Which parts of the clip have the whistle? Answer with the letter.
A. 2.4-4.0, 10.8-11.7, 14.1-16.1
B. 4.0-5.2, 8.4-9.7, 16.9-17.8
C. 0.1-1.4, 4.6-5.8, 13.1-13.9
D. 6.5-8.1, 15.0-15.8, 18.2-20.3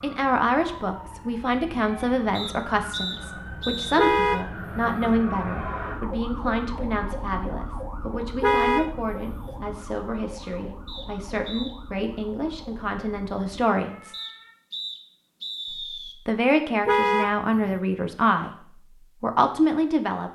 A.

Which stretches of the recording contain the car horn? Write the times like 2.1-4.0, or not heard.
4.0-5.2, 8.4-9.7, 16.9-17.8.